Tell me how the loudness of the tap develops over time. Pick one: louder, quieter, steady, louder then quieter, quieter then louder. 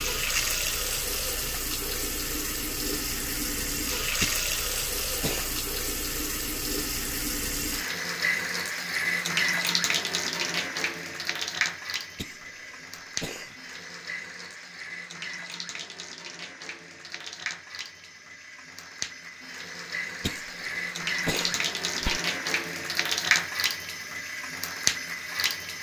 quieter then louder.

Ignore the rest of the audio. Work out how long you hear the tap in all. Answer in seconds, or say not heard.
26 s.